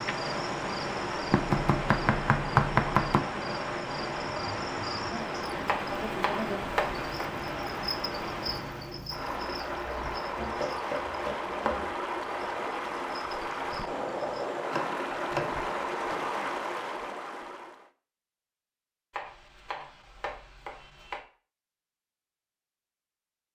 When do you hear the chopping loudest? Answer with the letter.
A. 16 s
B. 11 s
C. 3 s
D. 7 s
C.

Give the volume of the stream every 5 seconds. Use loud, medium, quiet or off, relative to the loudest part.
loud, loud, loud, loud, off.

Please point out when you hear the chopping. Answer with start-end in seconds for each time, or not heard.
1.3-3.2, 5.7-7.0, 10.3-11.9, 14.7-16.2, 19.1-21.2.